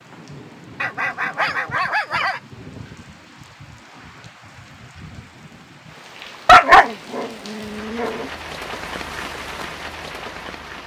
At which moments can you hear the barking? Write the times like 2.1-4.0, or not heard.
0.8-2.4, 6.5-8.2.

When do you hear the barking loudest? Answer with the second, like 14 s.
7 s.